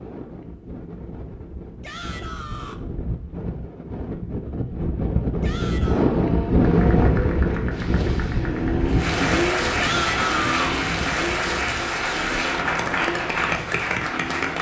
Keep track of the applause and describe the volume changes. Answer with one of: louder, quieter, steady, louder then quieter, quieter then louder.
louder.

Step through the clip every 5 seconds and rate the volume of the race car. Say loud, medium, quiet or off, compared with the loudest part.
off, loud, medium.